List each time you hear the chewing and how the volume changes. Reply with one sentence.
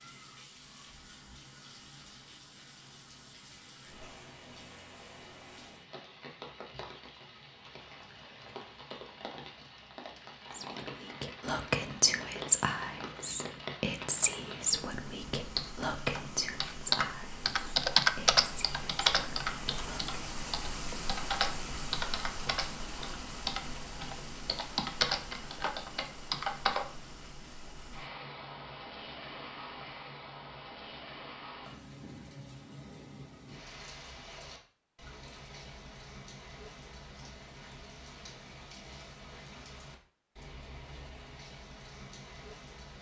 You can't hear the chewing here.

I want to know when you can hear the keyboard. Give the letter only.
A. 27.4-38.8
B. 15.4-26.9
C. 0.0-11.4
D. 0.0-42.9
B.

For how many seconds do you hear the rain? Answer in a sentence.
You can hear the rain for 43 seconds altogether.